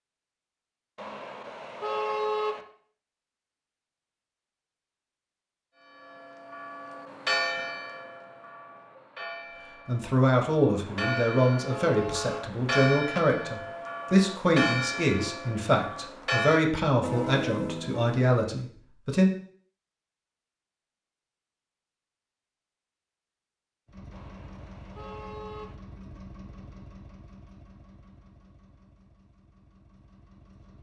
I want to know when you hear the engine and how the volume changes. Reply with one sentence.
The engine can be heard from 23.9 to 30.7 s, getting quieter.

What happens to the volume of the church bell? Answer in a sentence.
The volume of the church bell goes down, then up.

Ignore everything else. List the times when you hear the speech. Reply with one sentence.
You can hear the speech from 9.8 to 19.3 s.